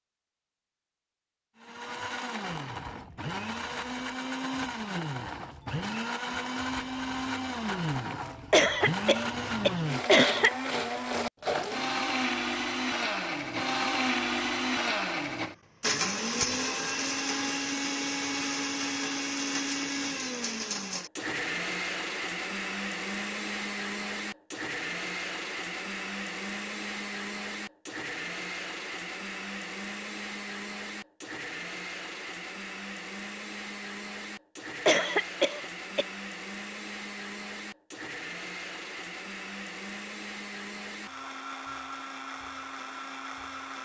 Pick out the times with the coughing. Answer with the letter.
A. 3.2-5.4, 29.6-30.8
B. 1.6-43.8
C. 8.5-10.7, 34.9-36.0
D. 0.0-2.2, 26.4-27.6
C.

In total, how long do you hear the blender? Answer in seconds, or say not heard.
42 s.